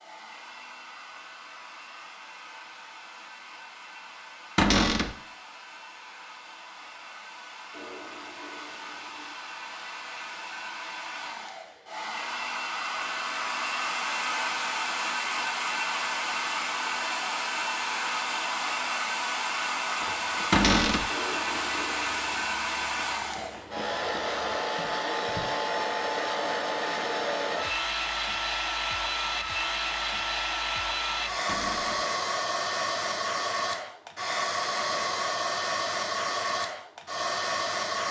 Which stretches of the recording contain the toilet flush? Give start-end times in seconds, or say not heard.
7.7-9.3, 21.1-22.4.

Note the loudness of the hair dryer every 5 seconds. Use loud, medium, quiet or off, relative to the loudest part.
quiet, quiet, loud, loud, loud, loud, loud, loud.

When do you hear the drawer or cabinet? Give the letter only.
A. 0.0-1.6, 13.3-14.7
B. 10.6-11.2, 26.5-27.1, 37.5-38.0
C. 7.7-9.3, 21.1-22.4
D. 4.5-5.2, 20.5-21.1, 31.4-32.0
D.